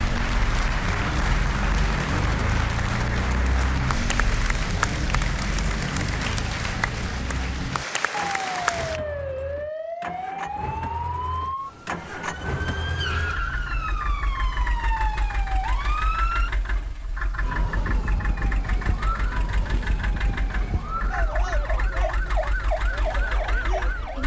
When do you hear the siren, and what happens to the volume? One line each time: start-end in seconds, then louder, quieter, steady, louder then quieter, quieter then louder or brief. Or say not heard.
0.0-24.2 steady.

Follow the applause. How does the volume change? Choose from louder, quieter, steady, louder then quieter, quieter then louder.
steady.